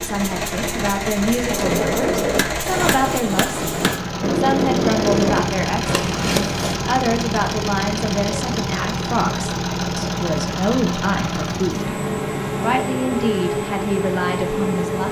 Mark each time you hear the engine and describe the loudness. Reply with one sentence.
The engine can be heard from 0.0 to 15.0 s, at a steady volume.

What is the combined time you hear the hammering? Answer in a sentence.
You can hear the hammering for 5 seconds altogether.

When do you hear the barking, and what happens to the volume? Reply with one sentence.
You can't hear the barking here.